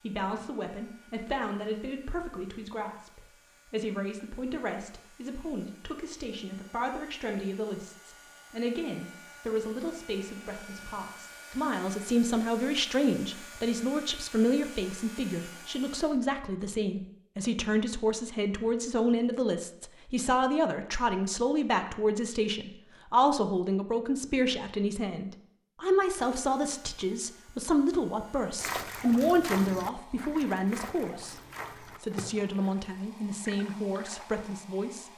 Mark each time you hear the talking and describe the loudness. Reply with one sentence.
You can hear the talking from 0.0 to 35.1 s, getting louder.